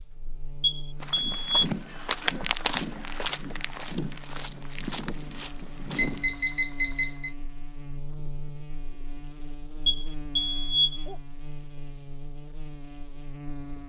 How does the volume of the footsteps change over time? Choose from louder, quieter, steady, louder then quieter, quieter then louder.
quieter.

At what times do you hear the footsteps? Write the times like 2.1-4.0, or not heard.
1.0-6.5.